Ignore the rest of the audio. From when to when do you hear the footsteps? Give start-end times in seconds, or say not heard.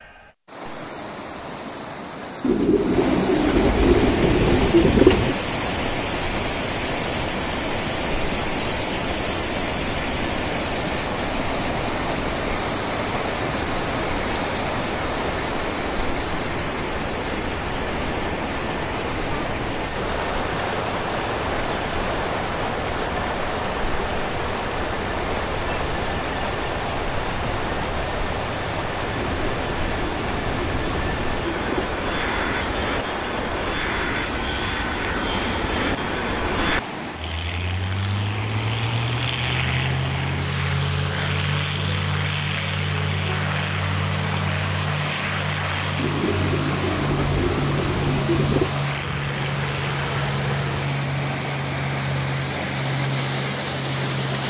not heard.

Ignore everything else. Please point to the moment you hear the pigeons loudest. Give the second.
5 s.